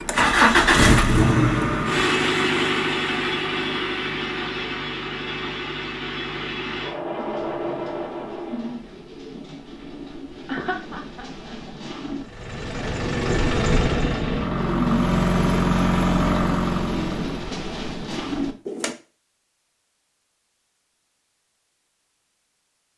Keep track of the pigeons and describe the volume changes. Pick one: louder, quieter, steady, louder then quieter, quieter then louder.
louder.